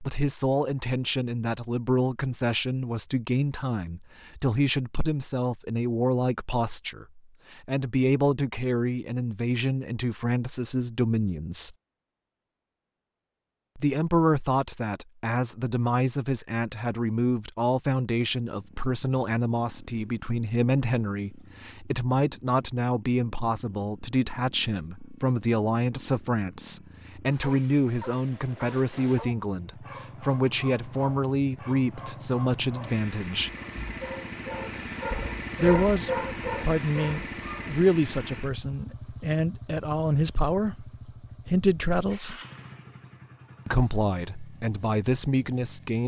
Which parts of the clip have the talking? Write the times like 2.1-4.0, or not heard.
0.0-11.8, 13.8-33.5, 35.5-42.4, 43.6-46.0.